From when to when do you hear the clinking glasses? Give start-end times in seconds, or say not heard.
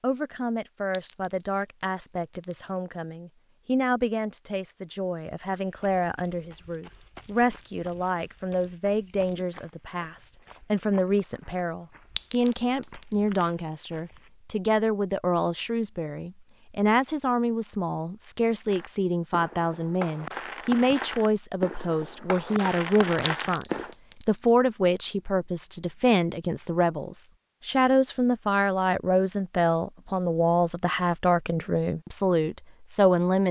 0.9-2.8, 12.2-13.2, 23.4-24.6.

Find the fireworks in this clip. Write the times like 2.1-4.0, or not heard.
18.6-23.9.